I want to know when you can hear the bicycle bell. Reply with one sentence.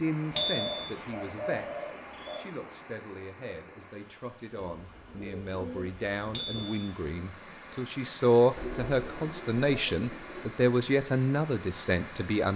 The bicycle bell can be heard from 0.3 to 0.9 s and from 6.3 to 6.8 s.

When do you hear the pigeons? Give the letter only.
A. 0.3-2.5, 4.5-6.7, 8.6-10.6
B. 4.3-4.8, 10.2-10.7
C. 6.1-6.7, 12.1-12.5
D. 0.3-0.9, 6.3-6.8
A.